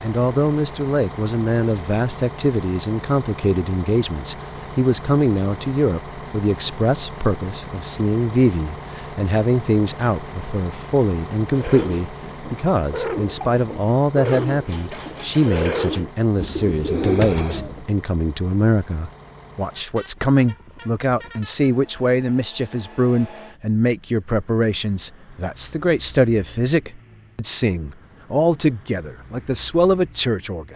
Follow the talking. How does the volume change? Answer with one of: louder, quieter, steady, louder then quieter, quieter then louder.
steady.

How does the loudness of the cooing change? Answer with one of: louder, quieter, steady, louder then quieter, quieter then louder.
louder.